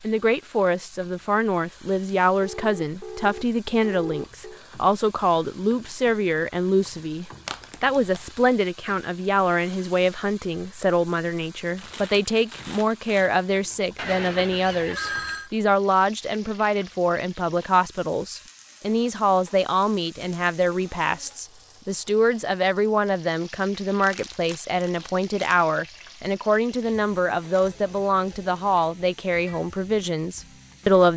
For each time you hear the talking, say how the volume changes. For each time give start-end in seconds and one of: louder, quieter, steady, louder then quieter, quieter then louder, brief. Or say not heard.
0.0-31.1 steady.